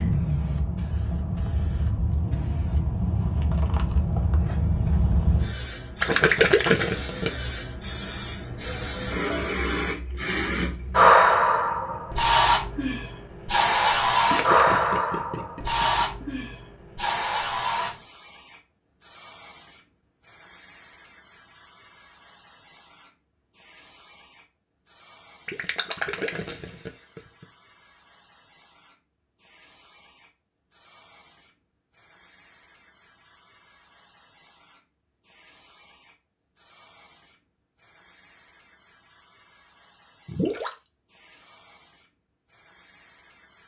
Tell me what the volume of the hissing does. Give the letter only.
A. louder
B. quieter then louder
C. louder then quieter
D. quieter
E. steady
C.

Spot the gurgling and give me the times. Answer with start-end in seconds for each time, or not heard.
6.0-7.3, 14.3-16.2, 25.4-27.4, 40.2-40.9.